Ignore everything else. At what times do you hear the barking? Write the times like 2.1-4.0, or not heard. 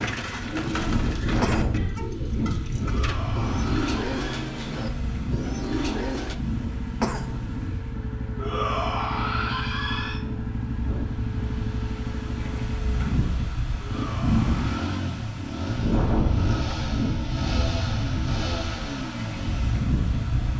not heard.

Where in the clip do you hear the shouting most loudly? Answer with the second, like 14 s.
9 s.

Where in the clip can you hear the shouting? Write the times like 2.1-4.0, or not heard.
2.8-4.5, 8.3-10.2, 13.8-15.1.